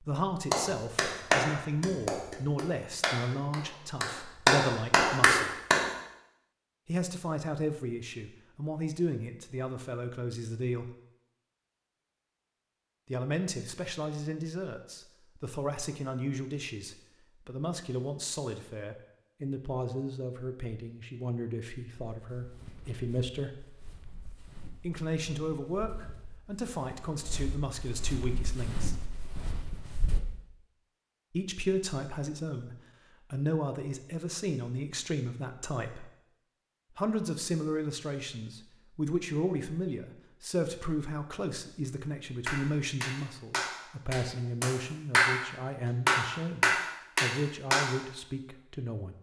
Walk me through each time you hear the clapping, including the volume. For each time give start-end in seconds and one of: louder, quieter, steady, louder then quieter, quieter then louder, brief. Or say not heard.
0.5-5.9 quieter then louder
42.5-45.4 brief
46.0-47.9 brief.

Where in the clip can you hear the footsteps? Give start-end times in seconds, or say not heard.
22.1-30.2.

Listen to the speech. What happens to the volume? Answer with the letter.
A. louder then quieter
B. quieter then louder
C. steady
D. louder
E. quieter
C.